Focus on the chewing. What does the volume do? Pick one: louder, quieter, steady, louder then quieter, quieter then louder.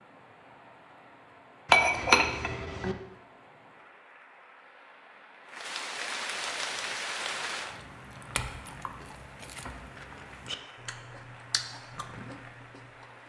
louder.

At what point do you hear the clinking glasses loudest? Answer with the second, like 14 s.
2 s.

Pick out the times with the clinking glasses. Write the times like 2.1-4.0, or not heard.
1.7-3.0, 8.3-9.7.